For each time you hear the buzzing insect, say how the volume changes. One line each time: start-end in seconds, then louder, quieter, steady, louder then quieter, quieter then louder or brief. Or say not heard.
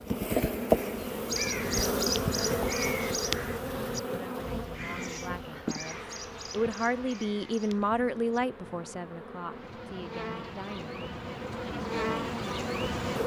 0.0-13.2 quieter then louder.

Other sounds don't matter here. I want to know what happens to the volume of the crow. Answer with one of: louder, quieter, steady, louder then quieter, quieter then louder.
quieter.